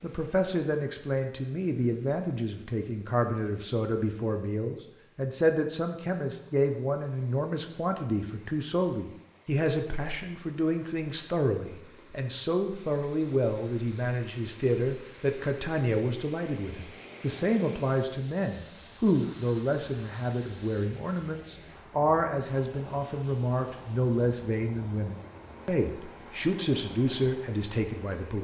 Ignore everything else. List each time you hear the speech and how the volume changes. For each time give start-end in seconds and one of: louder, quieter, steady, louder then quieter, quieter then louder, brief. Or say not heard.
0.0-28.3 steady.